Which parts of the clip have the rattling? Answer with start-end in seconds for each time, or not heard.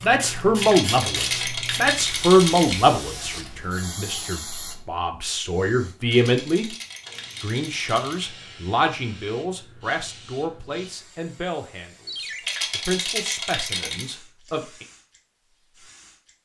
0.6-2.9, 6.0-8.2, 12.4-14.2.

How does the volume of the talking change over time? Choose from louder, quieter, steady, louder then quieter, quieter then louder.
quieter.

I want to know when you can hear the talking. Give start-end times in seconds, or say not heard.
0.0-6.7, 7.4-14.8.